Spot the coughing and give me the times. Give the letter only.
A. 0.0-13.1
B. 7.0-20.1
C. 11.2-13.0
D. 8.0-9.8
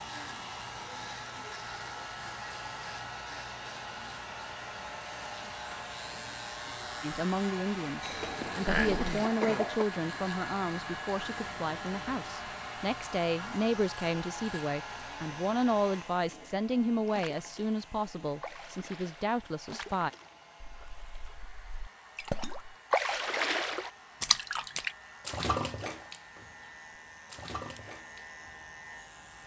D.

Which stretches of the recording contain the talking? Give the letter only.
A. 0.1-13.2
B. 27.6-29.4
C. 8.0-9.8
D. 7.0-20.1
D.